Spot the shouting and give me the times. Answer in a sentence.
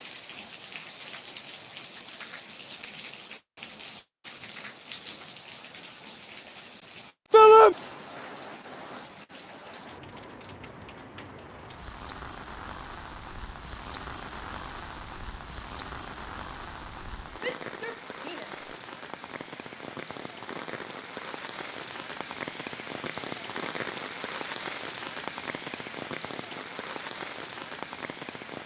The shouting can be heard from 7.3 to 7.8 s and from 17.4 to 18.6 s.